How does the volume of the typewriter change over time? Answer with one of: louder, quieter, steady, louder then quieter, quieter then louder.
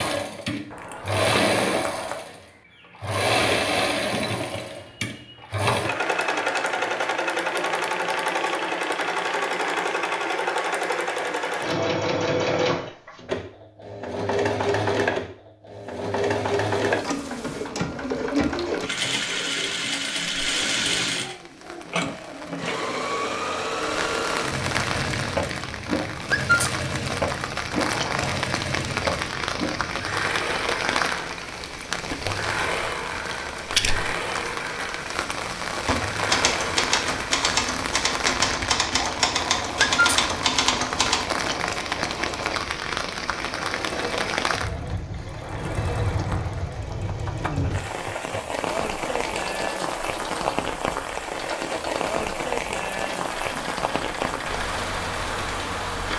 steady.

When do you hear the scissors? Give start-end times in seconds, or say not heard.
0.7-2.2, 27.7-28.5, 45.4-46.6.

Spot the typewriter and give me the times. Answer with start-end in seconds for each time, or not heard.
35.8-41.2.